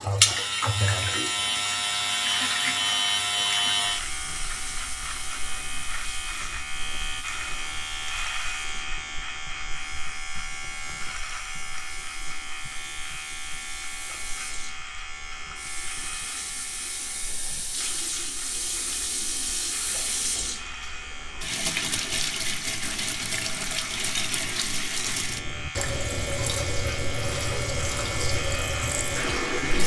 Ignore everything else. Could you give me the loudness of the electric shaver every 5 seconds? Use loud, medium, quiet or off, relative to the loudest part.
loud, medium, medium, quiet, quiet, medium.